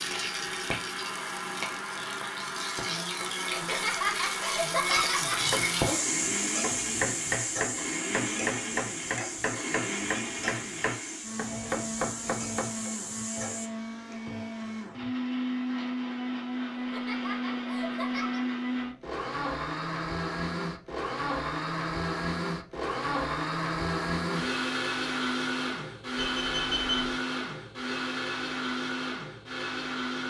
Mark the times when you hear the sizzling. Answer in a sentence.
You can hear the sizzling from 0.0 to 13.7 s.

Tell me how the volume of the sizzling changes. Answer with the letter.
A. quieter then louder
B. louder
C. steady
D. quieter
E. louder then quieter
E.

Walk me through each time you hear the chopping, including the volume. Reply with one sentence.
The chopping can be heard from 5.3 to 12.9 s, at a steady volume.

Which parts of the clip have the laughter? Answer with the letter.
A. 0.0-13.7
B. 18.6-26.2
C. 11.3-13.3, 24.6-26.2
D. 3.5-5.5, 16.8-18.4
D.